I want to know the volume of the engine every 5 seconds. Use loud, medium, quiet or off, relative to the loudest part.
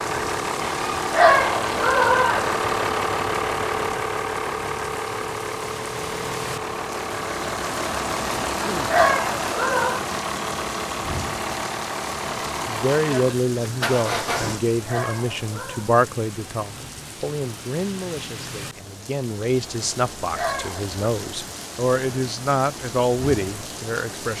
loud, loud, loud, off, off.